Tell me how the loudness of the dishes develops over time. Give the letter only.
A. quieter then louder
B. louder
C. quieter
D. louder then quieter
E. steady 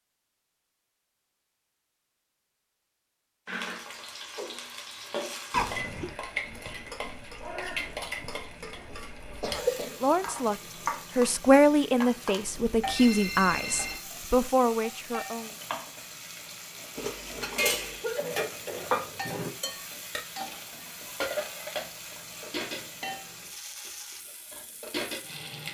C.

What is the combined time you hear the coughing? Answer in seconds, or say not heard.
3 s.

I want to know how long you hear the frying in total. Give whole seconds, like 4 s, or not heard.
22 s.